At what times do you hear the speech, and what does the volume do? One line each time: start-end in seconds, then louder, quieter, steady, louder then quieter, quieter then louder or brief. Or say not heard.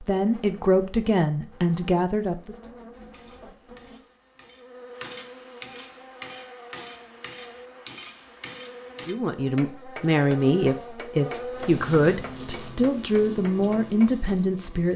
0.0-2.5 brief
9.1-14.9 steady.